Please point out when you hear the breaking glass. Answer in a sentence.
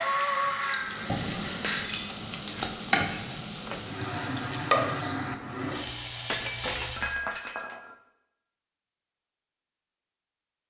The breaking glass can be heard from 1.6 to 2.2 s and from 6.2 to 8.0 s.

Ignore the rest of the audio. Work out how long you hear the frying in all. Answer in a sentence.
You can hear the frying for 7 seconds altogether.